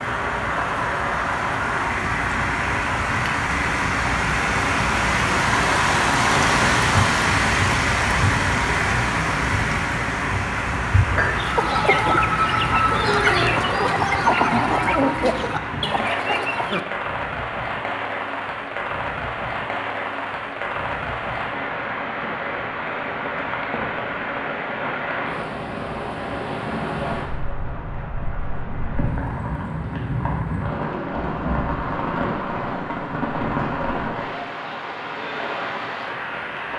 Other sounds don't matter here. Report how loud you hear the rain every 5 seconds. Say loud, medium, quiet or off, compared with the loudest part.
loud, loud, medium, medium, medium, medium, medium, medium.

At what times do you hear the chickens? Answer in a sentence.
You can hear the chickens from 11.3 to 16.9 s.